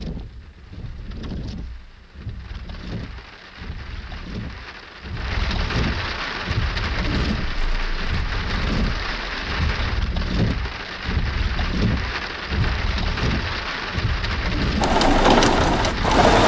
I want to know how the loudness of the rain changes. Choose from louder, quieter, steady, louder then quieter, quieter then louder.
louder.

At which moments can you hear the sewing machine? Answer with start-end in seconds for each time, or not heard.
14.8-16.4.